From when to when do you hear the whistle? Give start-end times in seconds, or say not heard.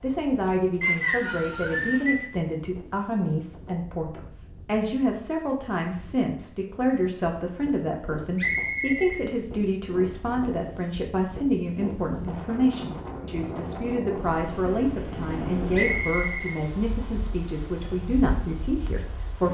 0.8-2.2, 8.3-9.2, 15.7-17.1.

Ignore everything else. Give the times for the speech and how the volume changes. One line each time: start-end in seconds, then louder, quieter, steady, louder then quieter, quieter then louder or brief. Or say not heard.
0.0-19.4 steady.